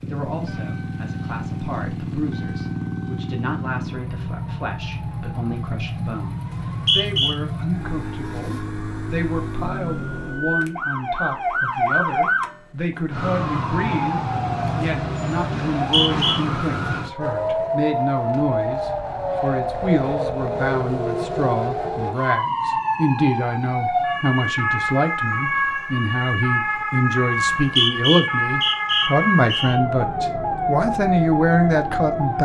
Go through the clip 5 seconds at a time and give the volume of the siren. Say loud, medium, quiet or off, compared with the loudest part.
quiet, quiet, loud, loud, loud, loud, loud.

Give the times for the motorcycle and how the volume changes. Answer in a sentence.
You can hear the motorcycle from 0.0 to 12.8 s, getting quieter.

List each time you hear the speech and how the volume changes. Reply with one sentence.
The speech can be heard from 0.0 to 32.4 s, getting louder.